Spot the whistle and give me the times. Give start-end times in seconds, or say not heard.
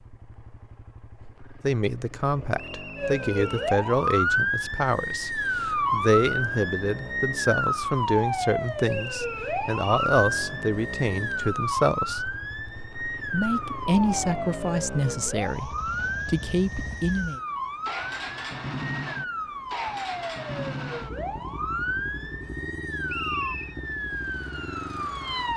2.5-3.7, 8.8-10.2, 23.1-23.8.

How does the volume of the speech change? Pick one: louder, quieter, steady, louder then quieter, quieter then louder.
steady.